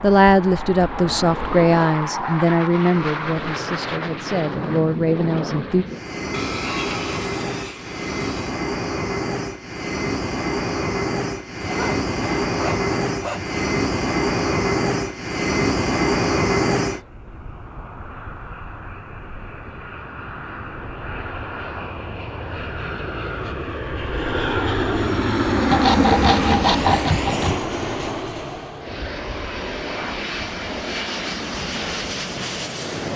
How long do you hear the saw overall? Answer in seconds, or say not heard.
6 s.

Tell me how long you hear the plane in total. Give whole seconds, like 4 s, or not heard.
33 s.